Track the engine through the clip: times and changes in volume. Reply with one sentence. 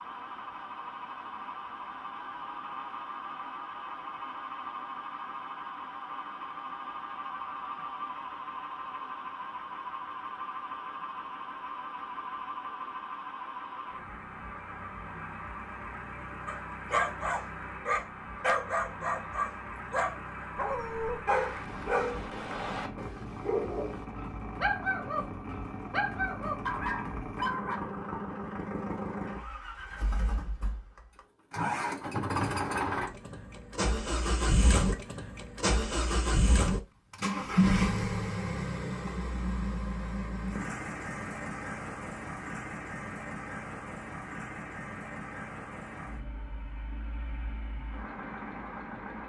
The engine can be heard from 0.0 to 49.2 s, getting louder then quieter.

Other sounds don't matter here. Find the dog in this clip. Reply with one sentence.
The dog can be heard from 16.4 to 27.8 s.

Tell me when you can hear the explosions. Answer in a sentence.
You can't hear the explosions here.